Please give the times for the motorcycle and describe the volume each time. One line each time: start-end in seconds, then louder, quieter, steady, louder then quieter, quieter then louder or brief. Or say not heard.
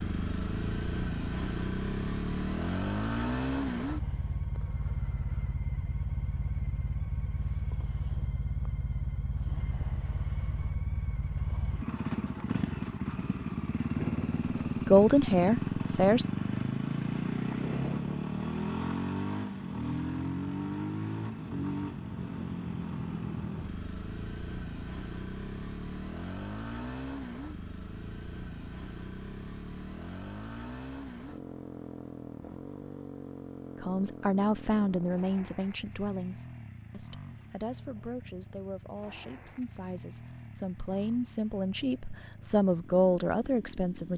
0.0-44.1 quieter.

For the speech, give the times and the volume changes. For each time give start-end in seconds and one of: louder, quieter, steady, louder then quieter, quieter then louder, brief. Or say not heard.
14.8-16.2 brief
33.8-44.1 quieter then louder.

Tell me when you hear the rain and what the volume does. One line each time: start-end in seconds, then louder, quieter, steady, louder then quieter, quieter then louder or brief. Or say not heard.
not heard.